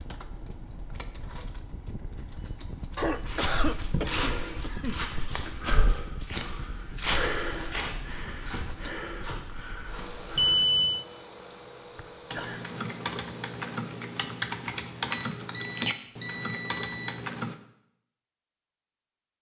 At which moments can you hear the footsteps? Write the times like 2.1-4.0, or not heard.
3.0-10.7.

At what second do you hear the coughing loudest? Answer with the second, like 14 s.
4 s.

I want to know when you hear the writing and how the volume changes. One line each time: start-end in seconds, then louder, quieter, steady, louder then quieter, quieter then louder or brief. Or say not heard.
not heard.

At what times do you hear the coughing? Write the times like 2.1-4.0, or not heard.
3.0-5.5, 11.4-12.7.